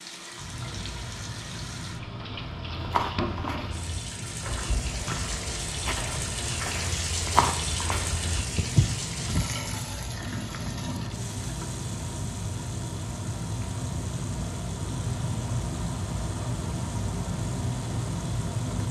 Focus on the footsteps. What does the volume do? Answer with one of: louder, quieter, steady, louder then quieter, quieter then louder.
louder.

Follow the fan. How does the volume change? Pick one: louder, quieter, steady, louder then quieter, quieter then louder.
louder.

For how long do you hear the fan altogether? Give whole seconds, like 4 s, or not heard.
19 s.